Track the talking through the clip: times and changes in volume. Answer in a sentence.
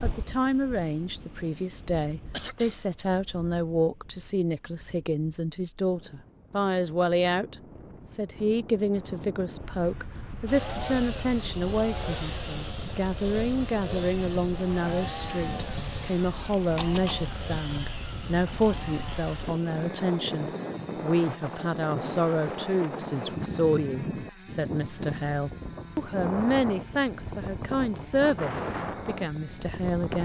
You can hear the talking from 0.0 to 30.2 s, at a steady volume.